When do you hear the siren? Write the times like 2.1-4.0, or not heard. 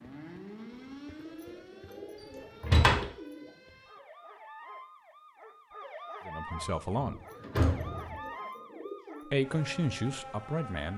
0.0-10.9.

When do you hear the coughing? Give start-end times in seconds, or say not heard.
not heard.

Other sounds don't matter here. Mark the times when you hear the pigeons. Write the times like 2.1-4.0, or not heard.
1.1-3.6, 7.0-9.4.